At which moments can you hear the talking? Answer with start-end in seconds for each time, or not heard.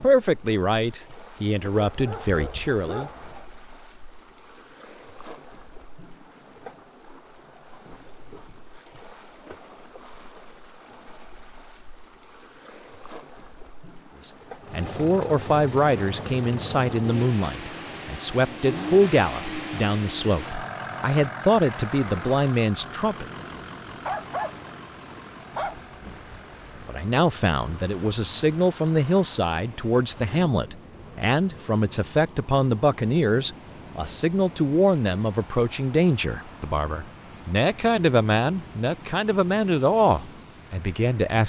0.0-3.1, 14.2-23.2, 26.9-41.4.